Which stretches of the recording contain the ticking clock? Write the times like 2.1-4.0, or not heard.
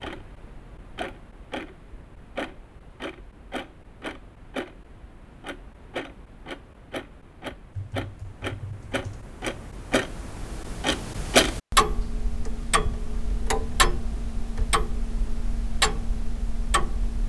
0.0-17.2.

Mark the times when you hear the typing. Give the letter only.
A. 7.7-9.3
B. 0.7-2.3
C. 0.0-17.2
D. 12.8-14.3
A.